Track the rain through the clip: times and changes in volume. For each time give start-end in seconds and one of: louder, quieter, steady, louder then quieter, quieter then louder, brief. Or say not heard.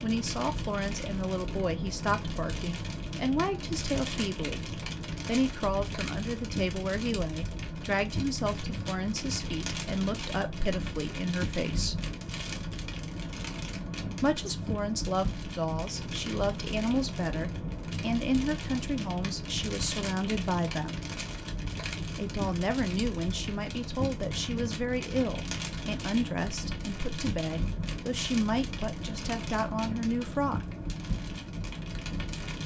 0.0-32.6 steady.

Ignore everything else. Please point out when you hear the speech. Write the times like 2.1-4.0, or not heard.
0.0-12.0, 14.2-21.0, 22.1-30.8.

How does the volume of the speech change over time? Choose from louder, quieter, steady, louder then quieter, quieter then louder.
steady.